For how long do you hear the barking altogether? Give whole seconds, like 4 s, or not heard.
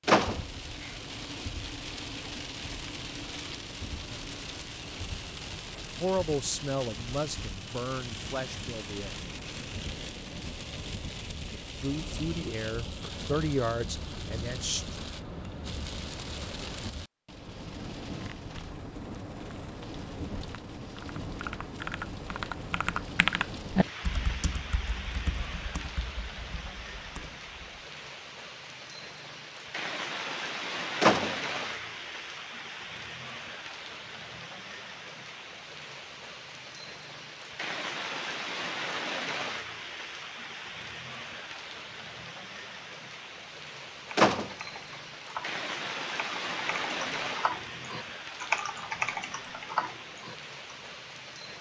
not heard.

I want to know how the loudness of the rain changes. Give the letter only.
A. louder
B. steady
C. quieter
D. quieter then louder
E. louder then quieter
B.